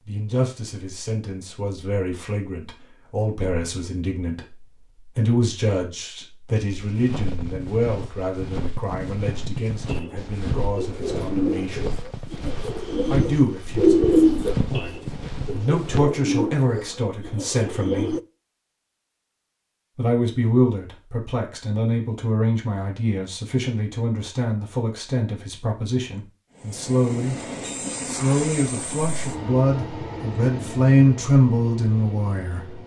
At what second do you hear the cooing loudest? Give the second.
14 s.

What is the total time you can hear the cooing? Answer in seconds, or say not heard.
8 s.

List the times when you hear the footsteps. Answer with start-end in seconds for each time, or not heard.
6.7-16.1.